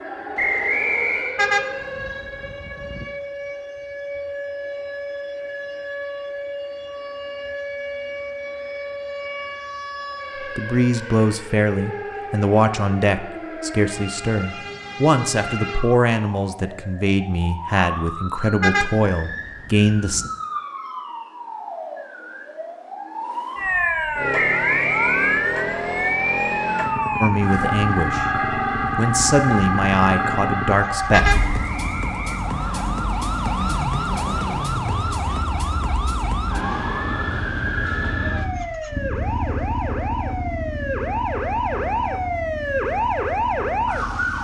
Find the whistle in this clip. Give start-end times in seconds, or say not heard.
0.3-1.4, 24.4-25.4, 31.4-32.9.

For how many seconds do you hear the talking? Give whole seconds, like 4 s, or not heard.
13 s.